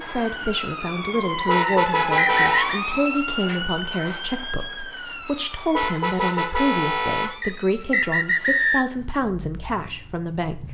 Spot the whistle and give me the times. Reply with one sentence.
You can hear the whistle from 1.6 to 2.8 s and from 7.4 to 8.8 s.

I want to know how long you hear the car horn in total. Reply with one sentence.
The car horn can be heard for 3 seconds in total.